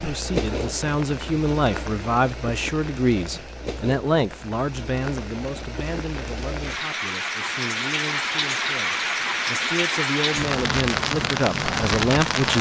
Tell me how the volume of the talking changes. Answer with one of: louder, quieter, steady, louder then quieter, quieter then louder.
quieter then louder.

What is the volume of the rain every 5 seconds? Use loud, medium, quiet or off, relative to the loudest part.
medium, loud, loud.